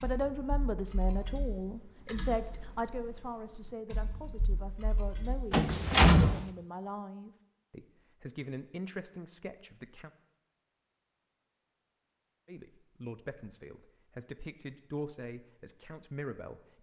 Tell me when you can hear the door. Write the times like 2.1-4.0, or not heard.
5.5-6.5.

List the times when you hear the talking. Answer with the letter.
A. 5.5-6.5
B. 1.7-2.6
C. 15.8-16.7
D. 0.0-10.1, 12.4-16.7
D.